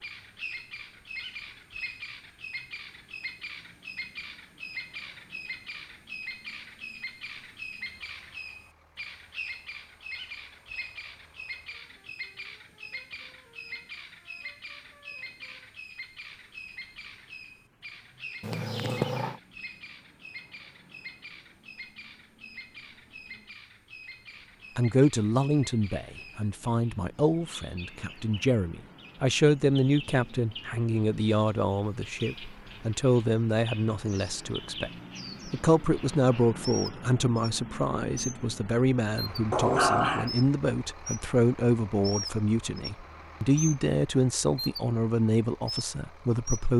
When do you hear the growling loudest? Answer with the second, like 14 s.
40 s.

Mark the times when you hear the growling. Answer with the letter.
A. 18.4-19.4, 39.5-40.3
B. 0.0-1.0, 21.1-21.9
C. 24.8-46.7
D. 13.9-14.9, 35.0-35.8
A.